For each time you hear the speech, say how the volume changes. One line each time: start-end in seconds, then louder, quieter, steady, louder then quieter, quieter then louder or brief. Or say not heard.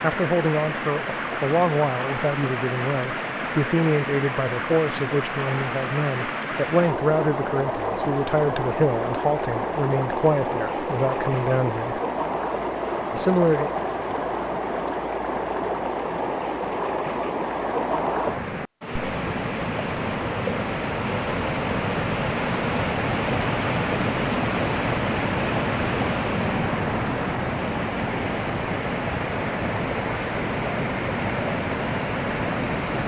0.0-12.0 steady
13.1-13.7 brief.